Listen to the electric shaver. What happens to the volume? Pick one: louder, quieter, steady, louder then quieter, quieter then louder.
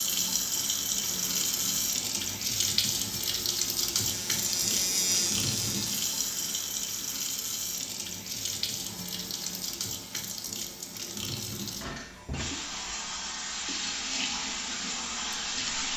louder then quieter.